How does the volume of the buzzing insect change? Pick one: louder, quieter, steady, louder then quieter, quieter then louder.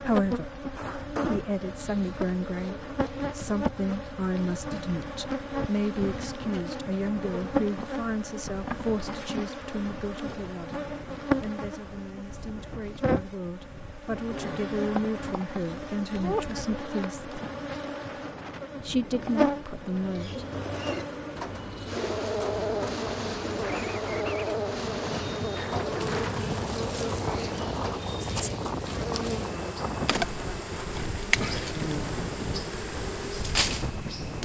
steady.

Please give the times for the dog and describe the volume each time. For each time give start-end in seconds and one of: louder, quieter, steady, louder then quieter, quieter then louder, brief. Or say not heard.
not heard.